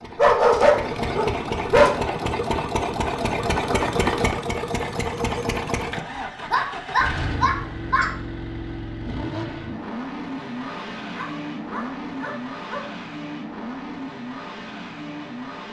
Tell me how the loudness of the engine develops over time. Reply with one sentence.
The volume of the engine goes down.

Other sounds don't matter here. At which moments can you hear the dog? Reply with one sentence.
You can hear the dog from 0.1 to 2.0 s, from 6.5 to 8.1 s and from 11.1 to 12.9 s.